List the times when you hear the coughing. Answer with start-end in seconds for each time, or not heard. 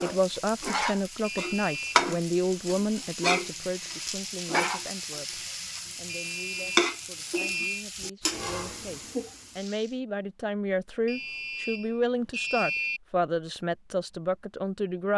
not heard.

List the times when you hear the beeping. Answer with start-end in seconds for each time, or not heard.
1.2-2.1, 6.0-7.8, 11.1-13.0.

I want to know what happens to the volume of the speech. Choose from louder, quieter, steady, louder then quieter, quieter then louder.
quieter then louder.